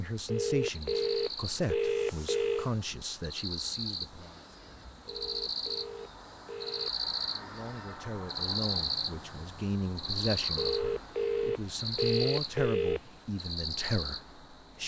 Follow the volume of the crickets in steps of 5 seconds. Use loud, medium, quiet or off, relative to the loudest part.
medium, loud, loud.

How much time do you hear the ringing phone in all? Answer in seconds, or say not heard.
7 s.